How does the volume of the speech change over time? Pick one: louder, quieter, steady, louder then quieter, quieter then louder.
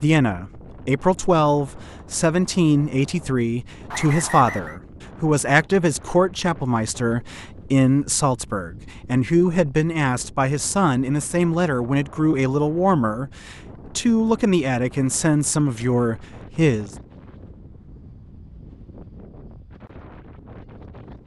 steady.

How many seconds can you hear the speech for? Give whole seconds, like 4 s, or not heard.
17 s.